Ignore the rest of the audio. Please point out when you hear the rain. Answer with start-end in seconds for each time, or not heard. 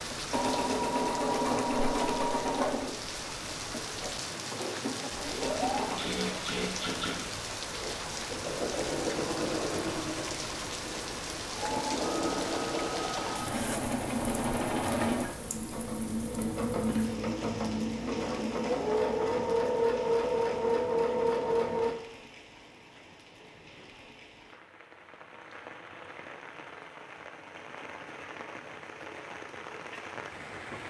0.0-30.8.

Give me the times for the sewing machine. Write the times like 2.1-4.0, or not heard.
0.0-21.9.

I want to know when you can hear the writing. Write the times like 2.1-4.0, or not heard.
not heard.